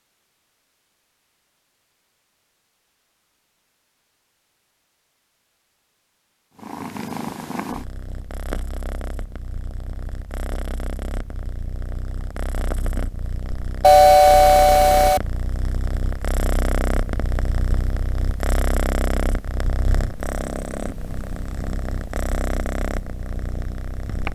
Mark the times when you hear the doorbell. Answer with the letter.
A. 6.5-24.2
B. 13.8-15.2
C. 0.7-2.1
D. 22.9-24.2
B.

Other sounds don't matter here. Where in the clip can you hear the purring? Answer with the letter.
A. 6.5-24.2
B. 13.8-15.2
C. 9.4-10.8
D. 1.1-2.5
A.